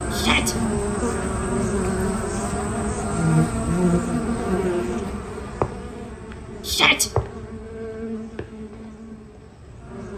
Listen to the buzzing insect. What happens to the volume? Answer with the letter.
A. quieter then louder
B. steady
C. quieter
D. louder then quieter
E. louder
C.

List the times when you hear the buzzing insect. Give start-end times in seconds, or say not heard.
0.0-10.1.